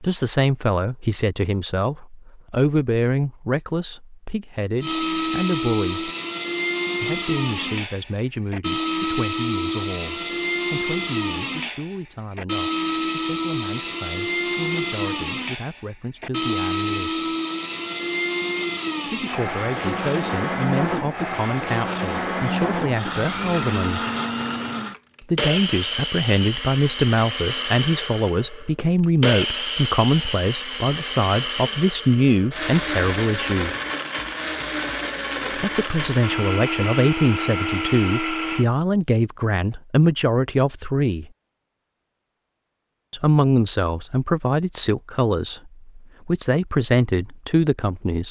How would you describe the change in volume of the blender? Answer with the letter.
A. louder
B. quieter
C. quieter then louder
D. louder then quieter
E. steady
E.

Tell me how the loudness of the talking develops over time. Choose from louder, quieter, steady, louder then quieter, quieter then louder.
quieter then louder.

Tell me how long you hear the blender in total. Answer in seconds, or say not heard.
34 s.